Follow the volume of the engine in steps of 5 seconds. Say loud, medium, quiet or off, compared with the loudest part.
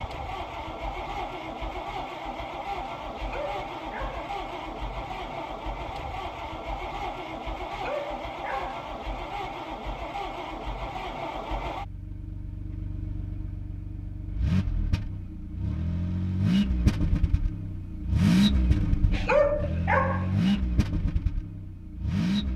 medium, medium, medium, loud, loud.